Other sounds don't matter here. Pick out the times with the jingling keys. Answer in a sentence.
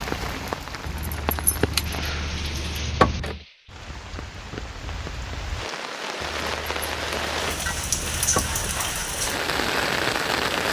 The jingling keys can be heard from 0.8 to 3.5 s and from 6.2 to 8.8 s.